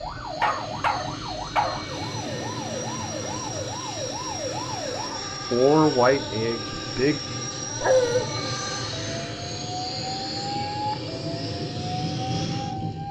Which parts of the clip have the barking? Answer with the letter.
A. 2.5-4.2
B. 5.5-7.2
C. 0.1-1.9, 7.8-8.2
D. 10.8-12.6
C.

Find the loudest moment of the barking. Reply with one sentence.
The volume of the barking peaks at 8 seconds.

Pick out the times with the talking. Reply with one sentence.
The talking can be heard from 5.5 to 7.2 s.